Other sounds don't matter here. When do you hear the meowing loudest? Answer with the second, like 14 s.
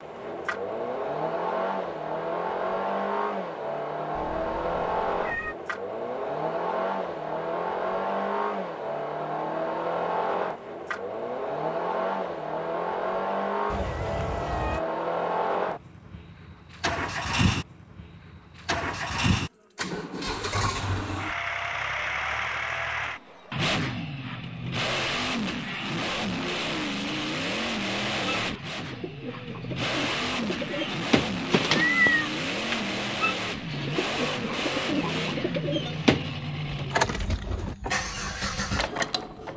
32 s.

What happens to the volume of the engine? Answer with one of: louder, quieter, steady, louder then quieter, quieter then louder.
steady.